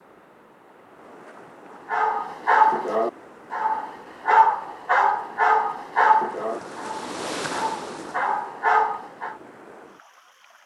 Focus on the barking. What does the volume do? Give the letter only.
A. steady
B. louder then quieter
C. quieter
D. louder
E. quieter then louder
E.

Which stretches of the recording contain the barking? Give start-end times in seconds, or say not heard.
1.9-9.3.